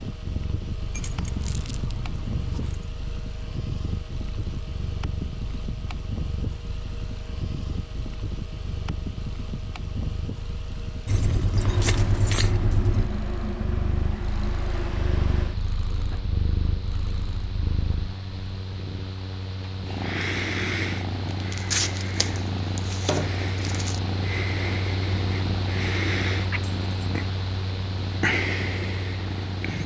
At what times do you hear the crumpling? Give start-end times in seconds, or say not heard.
1.4-1.9, 11.6-12.9, 21.3-24.0.